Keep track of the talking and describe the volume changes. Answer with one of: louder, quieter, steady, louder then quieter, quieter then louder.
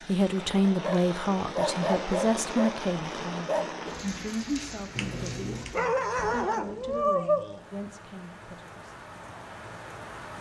quieter.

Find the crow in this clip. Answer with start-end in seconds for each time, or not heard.
not heard.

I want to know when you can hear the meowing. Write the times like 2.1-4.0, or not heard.
5.0-5.8.